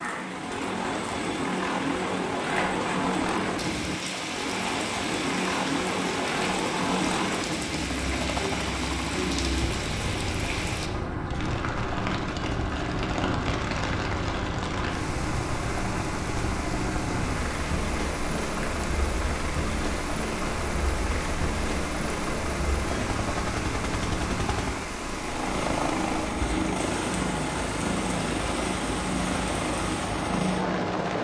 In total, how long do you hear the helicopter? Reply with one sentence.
You can hear the helicopter for 31 seconds altogether.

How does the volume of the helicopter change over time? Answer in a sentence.
The volume of the helicopter stays about the same.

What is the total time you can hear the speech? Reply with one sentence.
You can't hear the speech here.